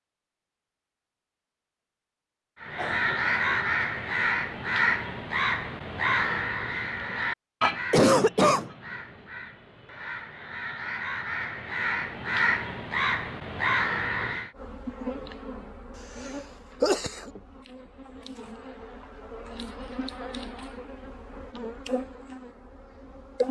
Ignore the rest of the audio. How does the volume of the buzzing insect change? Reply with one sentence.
The loudness of the buzzing insect goes down, then up.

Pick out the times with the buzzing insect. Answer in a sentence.
You can hear the buzzing insect from 14.6 to 23.4 s.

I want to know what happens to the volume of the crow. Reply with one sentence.
The volume of the crow goes down, then up.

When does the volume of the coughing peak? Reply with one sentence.
The loudest moment of the coughing is at 8 seconds.